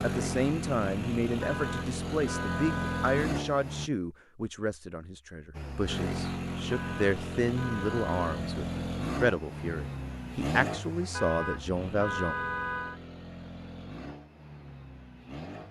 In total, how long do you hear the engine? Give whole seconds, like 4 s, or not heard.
14 s.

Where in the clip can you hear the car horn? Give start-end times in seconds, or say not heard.
1.4-3.2, 6.7-8.4, 11.1-13.0.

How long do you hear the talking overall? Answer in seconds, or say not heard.
12 s.